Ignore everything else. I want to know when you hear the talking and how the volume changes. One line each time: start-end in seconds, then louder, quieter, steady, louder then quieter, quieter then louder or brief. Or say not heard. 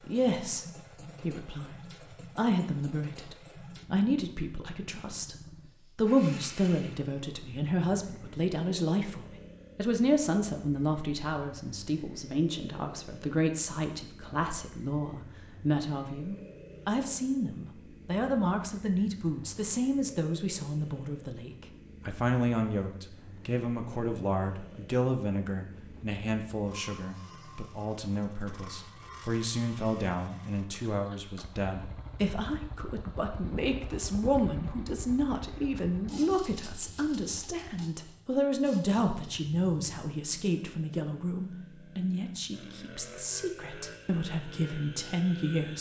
0.0-1.8 brief
2.4-5.3 brief
6.0-45.7 steady.